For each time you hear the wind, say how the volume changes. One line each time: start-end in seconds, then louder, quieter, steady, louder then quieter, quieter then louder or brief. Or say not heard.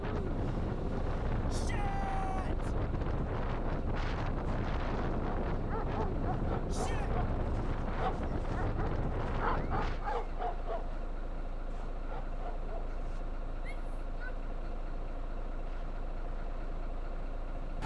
0.0-17.8 quieter.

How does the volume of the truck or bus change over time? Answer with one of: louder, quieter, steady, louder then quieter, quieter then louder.
steady.